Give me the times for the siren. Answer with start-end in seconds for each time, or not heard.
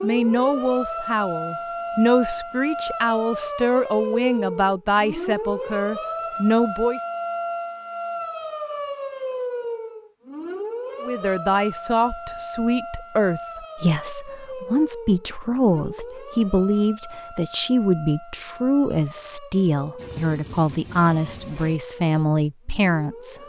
0.0-23.4.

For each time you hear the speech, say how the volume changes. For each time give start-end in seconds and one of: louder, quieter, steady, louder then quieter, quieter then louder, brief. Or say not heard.
0.0-7.0 steady
11.0-23.4 steady.